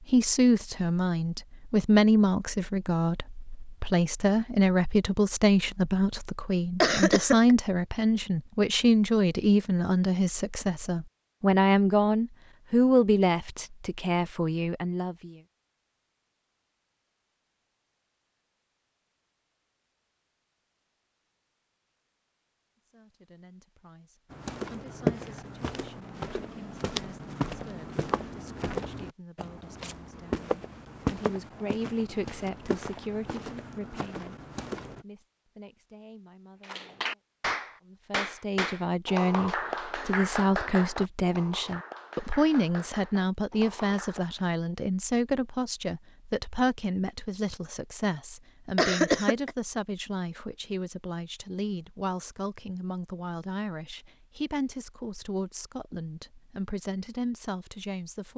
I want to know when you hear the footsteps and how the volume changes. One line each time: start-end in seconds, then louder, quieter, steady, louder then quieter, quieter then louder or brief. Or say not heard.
24.3-35.0 quieter.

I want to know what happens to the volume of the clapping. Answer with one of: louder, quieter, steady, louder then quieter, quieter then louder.
quieter.